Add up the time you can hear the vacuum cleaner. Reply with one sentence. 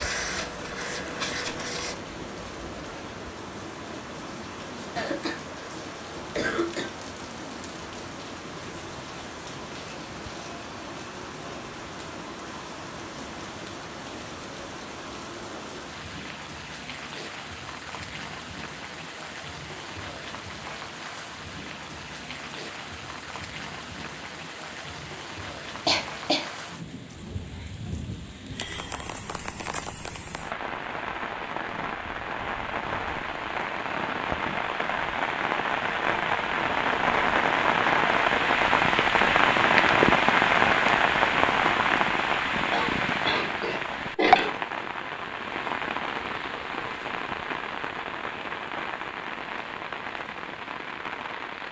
You can hear the vacuum cleaner for 2 seconds altogether.